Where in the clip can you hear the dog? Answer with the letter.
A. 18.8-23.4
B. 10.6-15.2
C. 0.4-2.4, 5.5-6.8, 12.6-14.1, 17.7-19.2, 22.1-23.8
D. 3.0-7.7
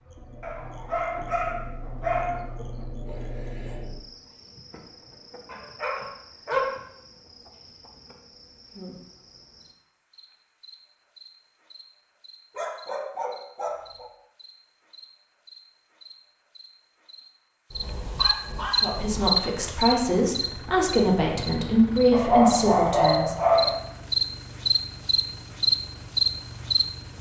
C.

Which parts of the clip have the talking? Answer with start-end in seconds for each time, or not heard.
18.8-23.4.